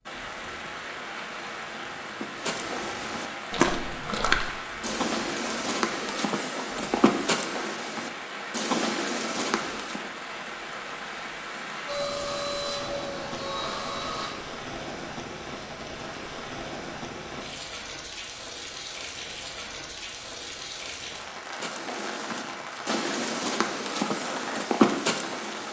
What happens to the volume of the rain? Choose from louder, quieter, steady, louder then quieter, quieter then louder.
steady.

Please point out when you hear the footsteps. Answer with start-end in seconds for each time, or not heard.
2.2-10.1, 21.6-25.6.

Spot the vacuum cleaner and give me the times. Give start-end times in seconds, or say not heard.
11.8-14.3.